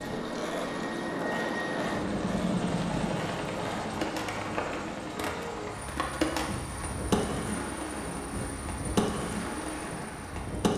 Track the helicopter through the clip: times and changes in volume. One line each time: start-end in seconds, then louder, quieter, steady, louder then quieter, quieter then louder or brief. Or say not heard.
0.0-10.7 quieter.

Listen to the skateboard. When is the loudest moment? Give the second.
7 s.